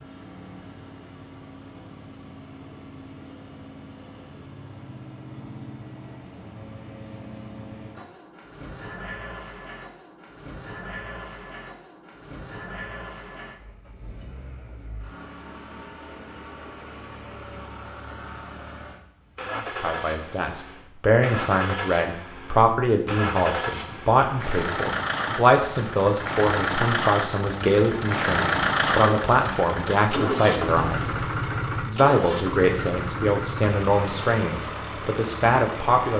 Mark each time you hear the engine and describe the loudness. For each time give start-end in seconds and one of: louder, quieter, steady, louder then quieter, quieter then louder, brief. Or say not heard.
0.0-36.1 louder.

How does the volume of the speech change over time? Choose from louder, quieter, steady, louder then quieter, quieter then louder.
steady.